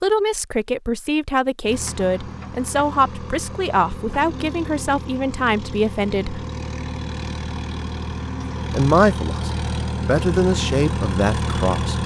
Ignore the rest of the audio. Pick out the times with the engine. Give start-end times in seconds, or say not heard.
1.6-12.0.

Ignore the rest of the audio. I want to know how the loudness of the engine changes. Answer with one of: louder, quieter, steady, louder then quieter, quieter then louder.
louder.